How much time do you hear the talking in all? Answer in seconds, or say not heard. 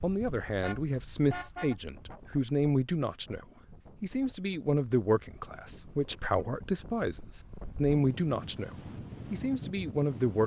10 s.